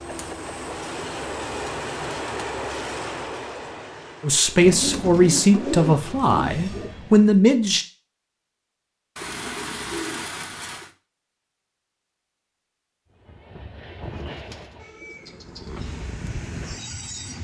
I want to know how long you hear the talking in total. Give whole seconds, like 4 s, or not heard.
4 s.